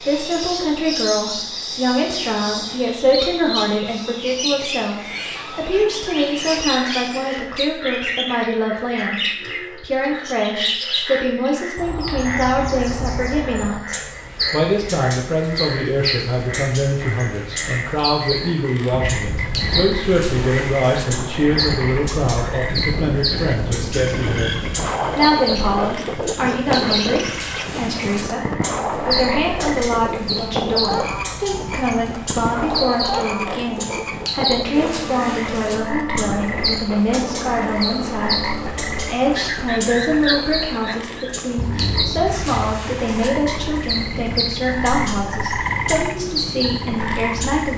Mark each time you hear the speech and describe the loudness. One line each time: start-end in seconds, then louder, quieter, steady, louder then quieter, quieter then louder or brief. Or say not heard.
0.0-47.7 steady.